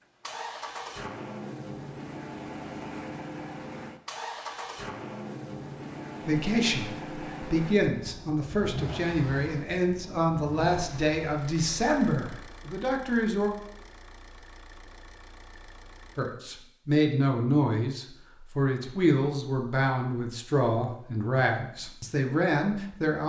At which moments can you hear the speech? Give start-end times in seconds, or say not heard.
6.2-13.5, 16.1-23.2.